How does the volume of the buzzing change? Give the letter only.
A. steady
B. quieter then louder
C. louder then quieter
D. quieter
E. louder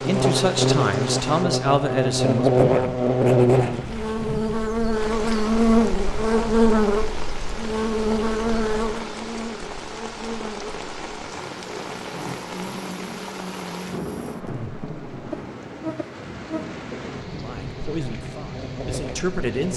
D.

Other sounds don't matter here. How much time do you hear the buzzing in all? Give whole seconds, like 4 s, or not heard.
20 s.